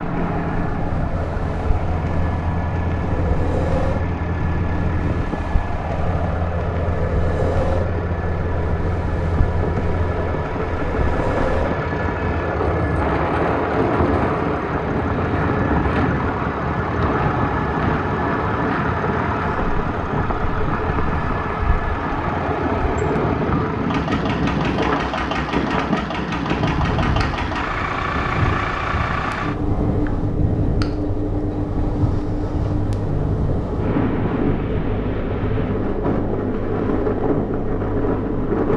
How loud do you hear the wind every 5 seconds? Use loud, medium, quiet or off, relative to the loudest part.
medium, medium, loud, loud, loud, loud, loud, loud.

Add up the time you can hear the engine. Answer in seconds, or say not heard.
39 s.